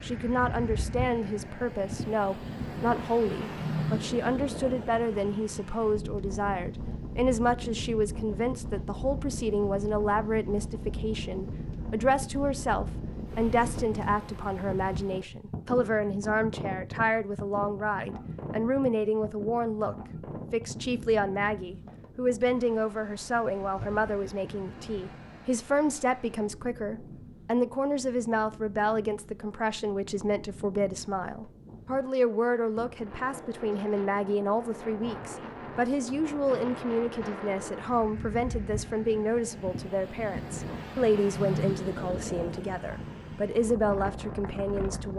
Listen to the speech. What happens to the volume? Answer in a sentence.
The loudness of the speech stays about the same.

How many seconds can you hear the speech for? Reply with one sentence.
You can hear the speech for 45 seconds altogether.